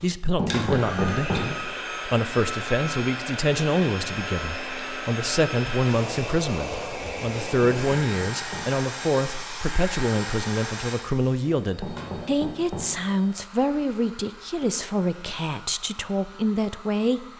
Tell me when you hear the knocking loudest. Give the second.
1 s.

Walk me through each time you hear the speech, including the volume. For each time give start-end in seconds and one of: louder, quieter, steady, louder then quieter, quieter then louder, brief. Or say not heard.
0.0-17.2 steady.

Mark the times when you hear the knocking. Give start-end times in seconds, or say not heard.
0.3-1.6, 7.6-8.8, 11.8-13.0.